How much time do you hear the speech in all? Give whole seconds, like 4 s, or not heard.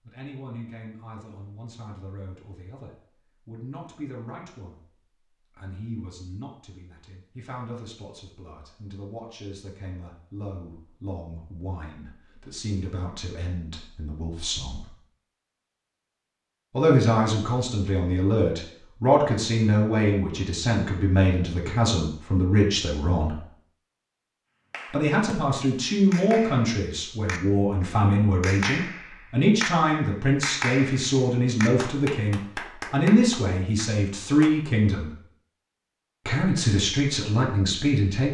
34 s.